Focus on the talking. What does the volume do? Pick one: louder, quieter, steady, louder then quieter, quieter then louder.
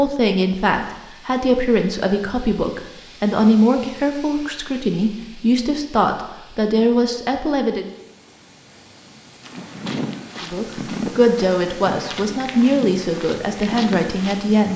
steady.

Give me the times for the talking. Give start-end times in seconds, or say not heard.
0.0-7.8, 10.4-14.7.